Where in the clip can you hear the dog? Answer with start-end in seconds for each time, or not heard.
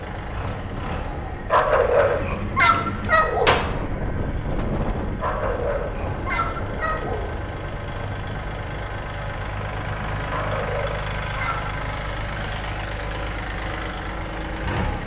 1.5-3.5, 5.2-7.2, 10.2-11.7.